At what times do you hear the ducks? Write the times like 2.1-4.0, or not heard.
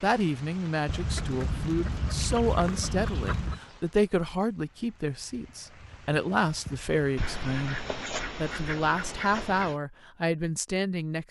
0.8-3.6, 7.2-9.8.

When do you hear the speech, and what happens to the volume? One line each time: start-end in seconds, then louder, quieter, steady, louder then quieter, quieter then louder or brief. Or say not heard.
0.0-11.2 steady.